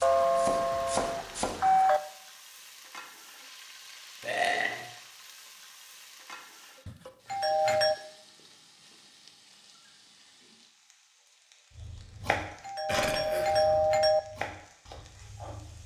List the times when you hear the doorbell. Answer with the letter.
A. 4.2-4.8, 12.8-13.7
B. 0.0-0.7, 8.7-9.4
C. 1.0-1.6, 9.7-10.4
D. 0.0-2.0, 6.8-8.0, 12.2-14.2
D.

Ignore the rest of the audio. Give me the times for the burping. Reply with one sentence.
The burping can be heard from 4.2 to 4.8 s and from 12.8 to 13.7 s.